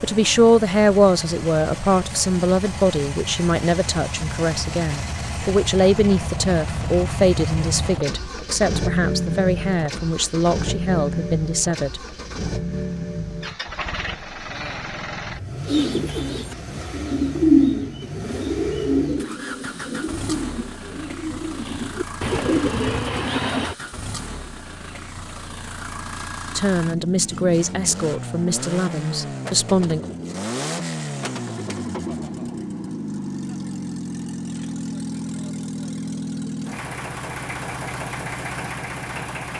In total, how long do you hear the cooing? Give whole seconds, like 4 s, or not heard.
8 s.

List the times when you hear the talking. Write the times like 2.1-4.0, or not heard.
0.0-12.0, 26.6-30.0.